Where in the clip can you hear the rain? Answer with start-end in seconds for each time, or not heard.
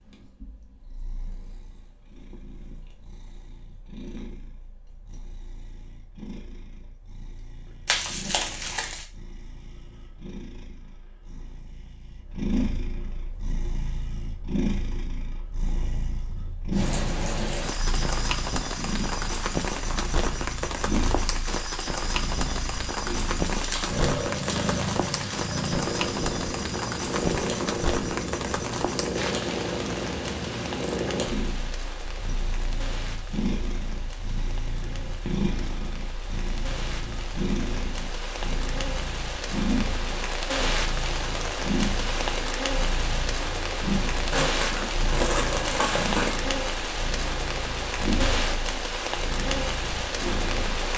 16.7-50.9.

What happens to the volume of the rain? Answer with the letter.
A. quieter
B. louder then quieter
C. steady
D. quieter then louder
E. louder
D.